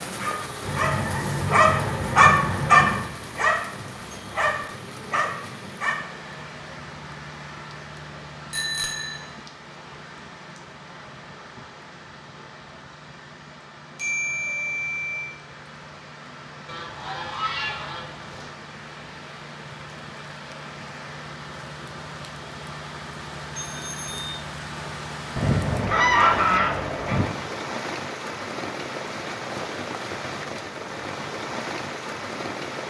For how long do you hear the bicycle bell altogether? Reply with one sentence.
The bicycle bell can be heard for 3 seconds in total.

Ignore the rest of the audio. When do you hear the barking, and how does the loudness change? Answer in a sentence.
The barking can be heard from 0.2 to 6.0 s, getting louder then quieter.